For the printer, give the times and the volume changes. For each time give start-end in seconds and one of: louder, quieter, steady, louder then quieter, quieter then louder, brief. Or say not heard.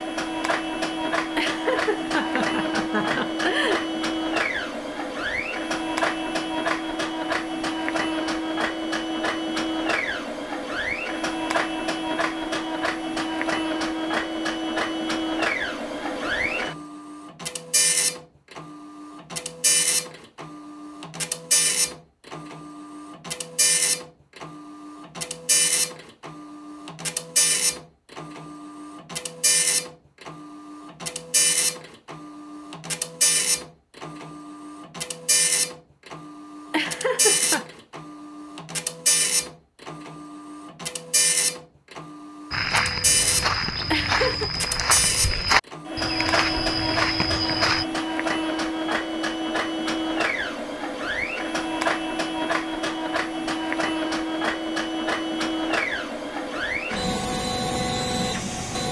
0.0-58.8 steady.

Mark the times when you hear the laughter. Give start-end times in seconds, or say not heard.
1.4-3.9, 36.7-37.6, 43.9-44.5.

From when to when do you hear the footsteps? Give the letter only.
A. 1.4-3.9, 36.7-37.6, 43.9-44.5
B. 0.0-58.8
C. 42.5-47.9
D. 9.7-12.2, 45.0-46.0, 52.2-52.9
C.